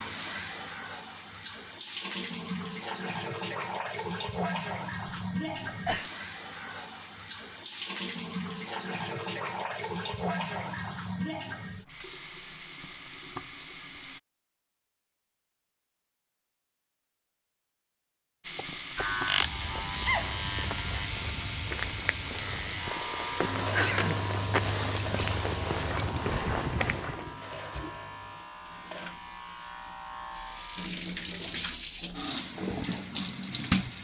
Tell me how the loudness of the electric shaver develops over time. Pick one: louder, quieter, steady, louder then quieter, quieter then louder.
quieter.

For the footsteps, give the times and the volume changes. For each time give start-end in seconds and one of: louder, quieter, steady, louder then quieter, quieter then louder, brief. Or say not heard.
18.6-27.4 louder.